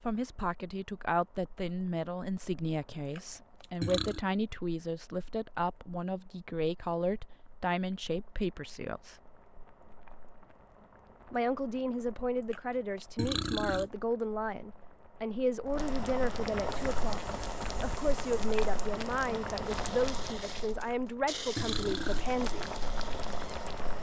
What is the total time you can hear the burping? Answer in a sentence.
You can hear the burping for 4 seconds altogether.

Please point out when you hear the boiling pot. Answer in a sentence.
The boiling pot can be heard from 0.0 to 23.9 s.